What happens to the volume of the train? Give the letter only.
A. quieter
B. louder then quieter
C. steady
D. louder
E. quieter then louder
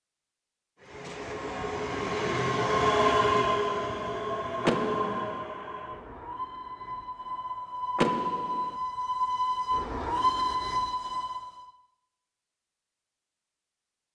E.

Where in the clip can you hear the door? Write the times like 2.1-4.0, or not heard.
4.7-5.4, 8.0-8.8.